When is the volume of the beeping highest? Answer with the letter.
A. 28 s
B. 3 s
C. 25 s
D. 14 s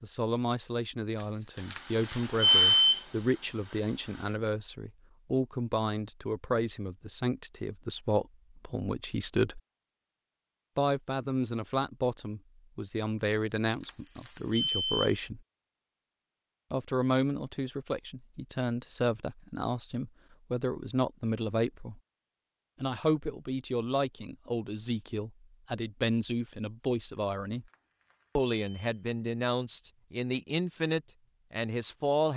B.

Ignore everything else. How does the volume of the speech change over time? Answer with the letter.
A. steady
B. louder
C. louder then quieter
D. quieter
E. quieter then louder
A.